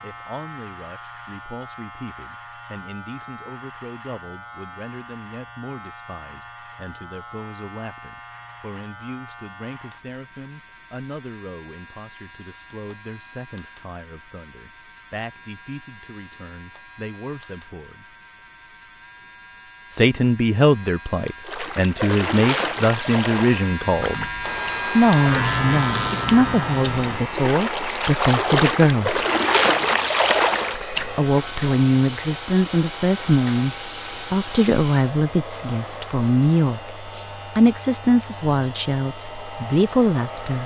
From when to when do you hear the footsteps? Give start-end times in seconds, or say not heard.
not heard.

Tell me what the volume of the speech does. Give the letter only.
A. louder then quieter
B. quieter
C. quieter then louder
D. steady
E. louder
E.